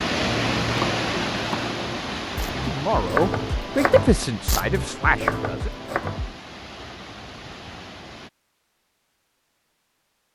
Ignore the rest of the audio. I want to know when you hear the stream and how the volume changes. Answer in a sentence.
You can hear the stream from 0.0 to 8.3 s, getting quieter.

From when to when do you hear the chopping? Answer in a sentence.
The chopping can be heard from 0.1 to 6.3 s.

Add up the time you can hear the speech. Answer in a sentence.
You can hear the speech for 3 seconds altogether.